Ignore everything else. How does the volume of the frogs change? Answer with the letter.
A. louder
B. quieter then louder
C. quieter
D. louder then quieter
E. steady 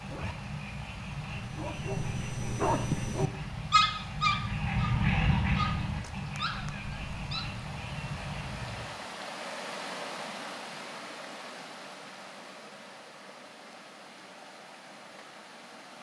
D.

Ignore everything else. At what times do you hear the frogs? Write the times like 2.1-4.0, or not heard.
0.0-8.9.